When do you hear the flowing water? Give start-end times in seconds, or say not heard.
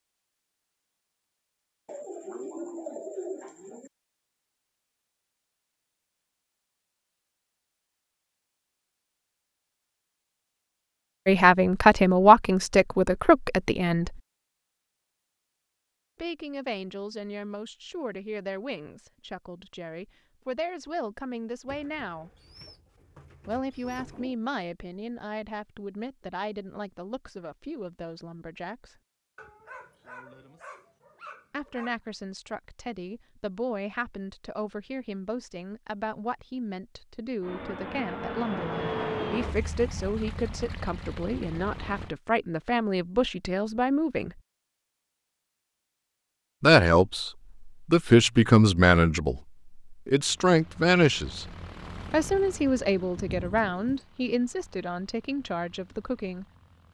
not heard.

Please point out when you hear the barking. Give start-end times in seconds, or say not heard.
29.4-31.9.